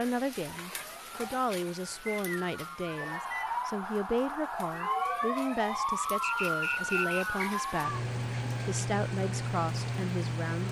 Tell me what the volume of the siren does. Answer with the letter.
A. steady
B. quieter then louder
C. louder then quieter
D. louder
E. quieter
D.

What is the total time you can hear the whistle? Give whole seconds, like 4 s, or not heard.
3 s.